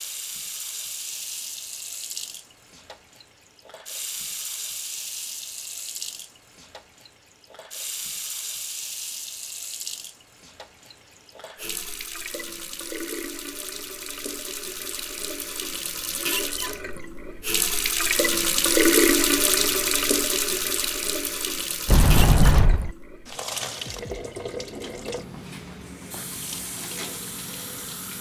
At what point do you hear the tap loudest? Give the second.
19 s.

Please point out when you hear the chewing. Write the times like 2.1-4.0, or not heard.
not heard.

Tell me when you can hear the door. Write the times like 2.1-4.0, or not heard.
21.9-22.9.